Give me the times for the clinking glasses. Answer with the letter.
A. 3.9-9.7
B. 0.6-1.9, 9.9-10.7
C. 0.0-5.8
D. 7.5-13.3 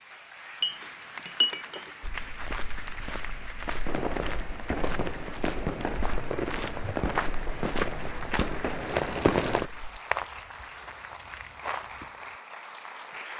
B.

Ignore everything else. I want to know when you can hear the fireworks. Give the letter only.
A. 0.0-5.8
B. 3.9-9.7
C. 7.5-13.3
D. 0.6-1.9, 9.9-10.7
B.